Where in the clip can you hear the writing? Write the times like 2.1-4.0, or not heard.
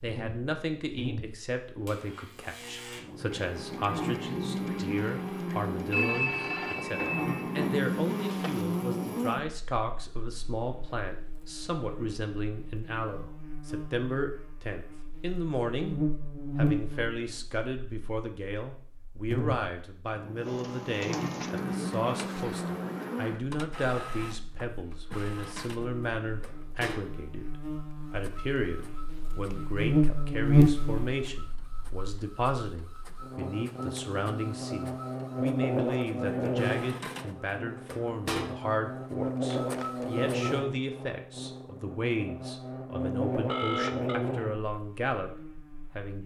not heard.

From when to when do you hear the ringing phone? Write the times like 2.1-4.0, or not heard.
5.9-7.8, 43.5-44.2.